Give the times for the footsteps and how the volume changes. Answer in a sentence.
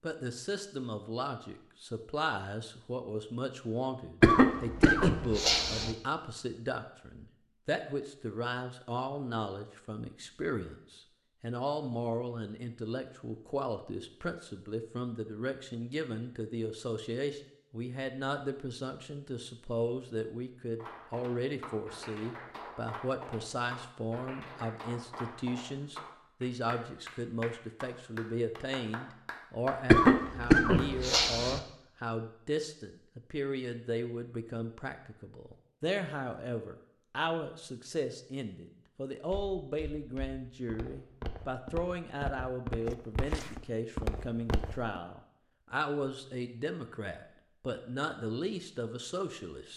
The footsteps can be heard from 39.3 to 45.0 s, getting louder.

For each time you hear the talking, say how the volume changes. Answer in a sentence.
You can hear the talking from 0.0 to 49.7 s, at a steady volume.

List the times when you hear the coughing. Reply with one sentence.
The coughing can be heard from 4.2 to 6.0 s and from 29.9 to 31.6 s.